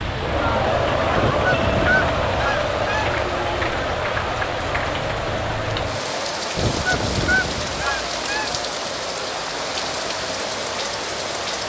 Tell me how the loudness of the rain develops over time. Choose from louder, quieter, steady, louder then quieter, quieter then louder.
steady.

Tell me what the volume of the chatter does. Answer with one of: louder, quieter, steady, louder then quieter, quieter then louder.
quieter.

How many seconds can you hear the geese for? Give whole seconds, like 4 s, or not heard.
4 s.